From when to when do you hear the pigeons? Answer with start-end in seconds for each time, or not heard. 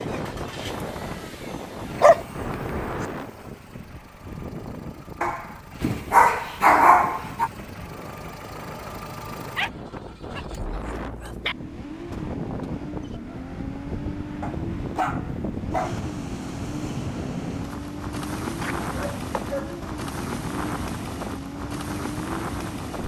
not heard.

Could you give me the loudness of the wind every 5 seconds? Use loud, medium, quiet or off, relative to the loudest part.
loud, medium, loud, loud, loud.